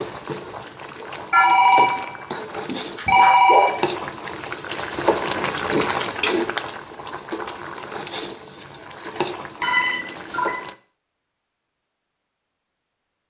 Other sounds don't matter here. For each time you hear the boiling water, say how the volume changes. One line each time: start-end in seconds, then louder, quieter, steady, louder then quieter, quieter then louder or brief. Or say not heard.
0.0-10.8 louder then quieter.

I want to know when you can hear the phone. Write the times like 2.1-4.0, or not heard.
1.3-3.7, 9.6-10.6.